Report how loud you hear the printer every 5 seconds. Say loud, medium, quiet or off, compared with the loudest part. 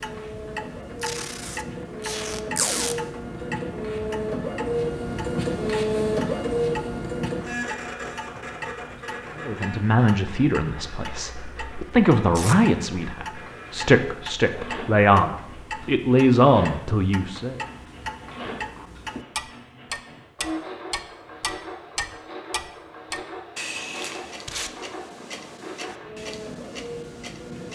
loud, loud, quiet, quiet, medium, medium.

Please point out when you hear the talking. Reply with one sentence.
You can hear the talking from 9.3 to 17.6 s.